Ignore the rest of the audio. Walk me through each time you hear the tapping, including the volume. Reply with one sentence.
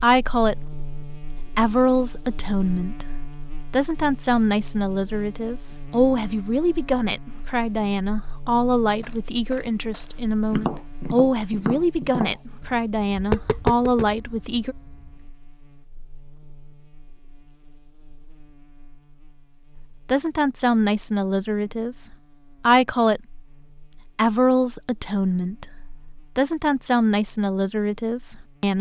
You can hear the tapping from 9.0 to 15.2 s, getting louder then quieter.